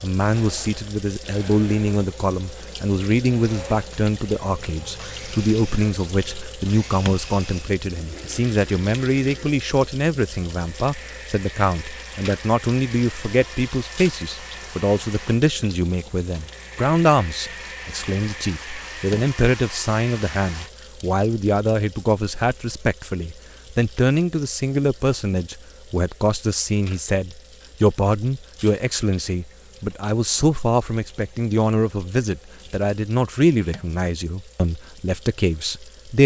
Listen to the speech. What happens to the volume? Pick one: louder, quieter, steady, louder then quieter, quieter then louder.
steady.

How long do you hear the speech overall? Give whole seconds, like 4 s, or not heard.
36 s.